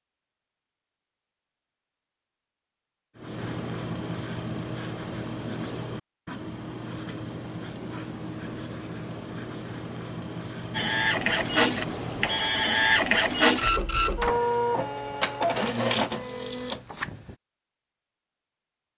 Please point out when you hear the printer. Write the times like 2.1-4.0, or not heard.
10.7-17.4.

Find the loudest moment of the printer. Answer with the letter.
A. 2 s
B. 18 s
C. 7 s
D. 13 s
D.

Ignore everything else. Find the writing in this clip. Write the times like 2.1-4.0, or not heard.
3.1-12.3.